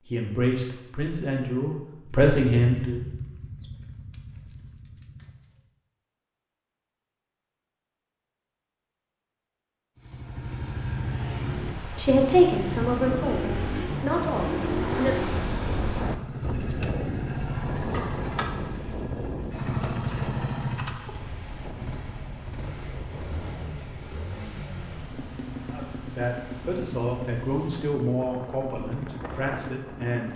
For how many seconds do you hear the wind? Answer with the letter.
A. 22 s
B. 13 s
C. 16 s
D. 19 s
D.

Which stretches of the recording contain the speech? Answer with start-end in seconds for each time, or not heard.
0.1-3.0, 11.8-15.3, 25.7-30.3.